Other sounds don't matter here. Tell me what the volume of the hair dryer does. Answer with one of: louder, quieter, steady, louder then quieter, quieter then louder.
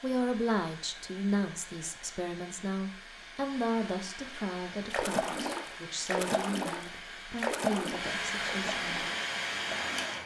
louder.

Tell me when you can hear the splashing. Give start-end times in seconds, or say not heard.
4.9-10.2.